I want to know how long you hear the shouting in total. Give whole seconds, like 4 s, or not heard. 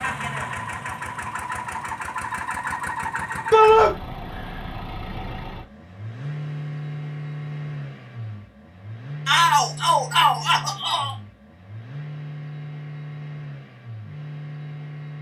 2 s.